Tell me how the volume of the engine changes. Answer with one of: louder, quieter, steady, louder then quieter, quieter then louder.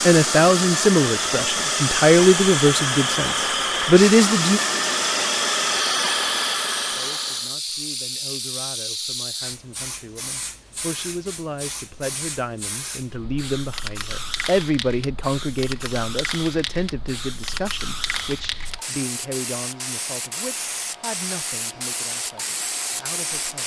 steady.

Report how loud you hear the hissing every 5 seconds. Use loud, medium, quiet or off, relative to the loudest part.
loud, loud, medium, medium, loud.